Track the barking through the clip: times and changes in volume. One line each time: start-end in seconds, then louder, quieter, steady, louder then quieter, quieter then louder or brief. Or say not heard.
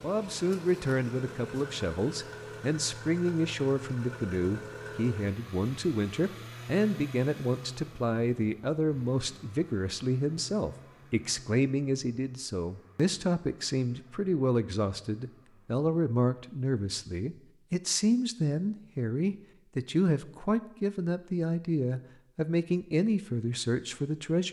not heard.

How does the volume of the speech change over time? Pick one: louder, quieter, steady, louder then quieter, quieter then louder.
steady.